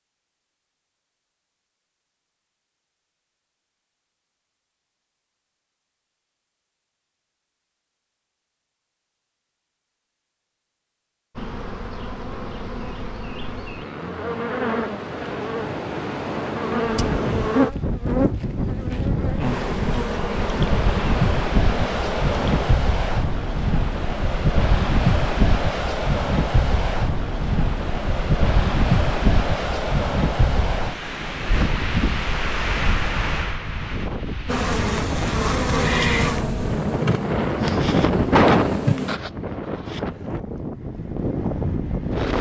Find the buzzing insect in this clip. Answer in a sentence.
The buzzing insect can be heard from 11.3 to 22.8 s and from 34.5 to 39.2 s.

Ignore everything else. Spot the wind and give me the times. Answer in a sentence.
You can hear the wind from 16.9 to 42.3 s.